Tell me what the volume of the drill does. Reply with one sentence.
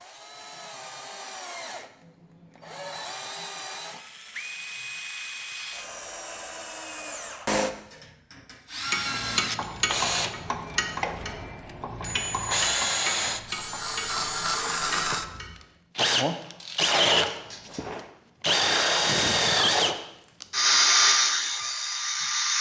The loudness of the drill goes up.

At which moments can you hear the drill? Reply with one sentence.
The drill can be heard from 0.0 to 22.5 s.